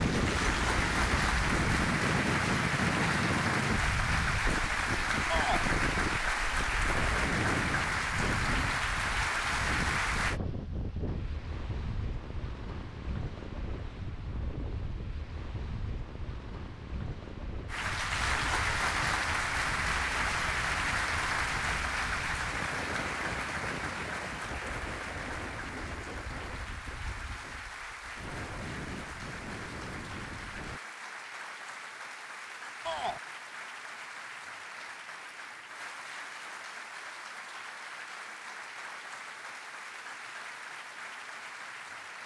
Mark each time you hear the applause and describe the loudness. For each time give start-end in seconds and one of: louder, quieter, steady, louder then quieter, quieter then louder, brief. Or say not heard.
0.0-10.4 steady
17.6-42.2 quieter.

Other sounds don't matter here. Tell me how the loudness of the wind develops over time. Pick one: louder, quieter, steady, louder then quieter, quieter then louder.
quieter.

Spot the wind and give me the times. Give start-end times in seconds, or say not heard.
0.0-30.8.